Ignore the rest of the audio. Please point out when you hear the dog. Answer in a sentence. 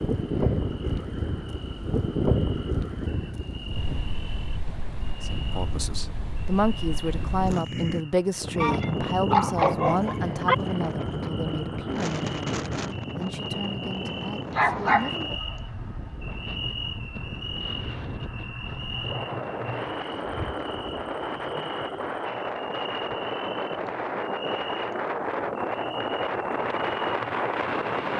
The dog can be heard from 8.6 to 10.6 s and from 14.5 to 15.2 s.